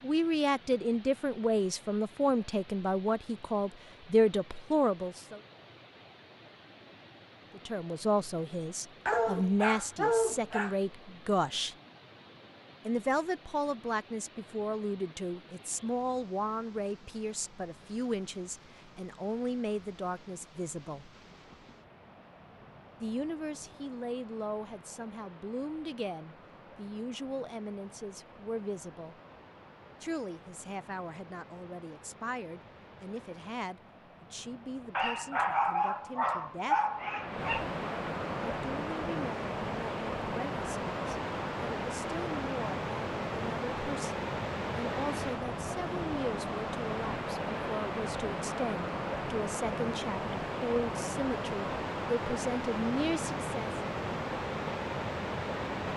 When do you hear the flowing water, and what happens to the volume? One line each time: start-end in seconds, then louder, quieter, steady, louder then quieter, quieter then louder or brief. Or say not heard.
0.0-55.9 louder.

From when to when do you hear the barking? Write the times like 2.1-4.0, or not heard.
9.1-10.8, 35.0-37.6.